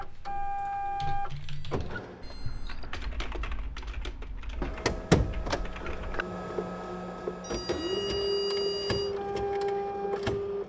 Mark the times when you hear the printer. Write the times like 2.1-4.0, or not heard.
0.0-2.4, 4.5-10.6.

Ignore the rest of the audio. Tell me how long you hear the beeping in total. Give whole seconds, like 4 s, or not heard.
3 s.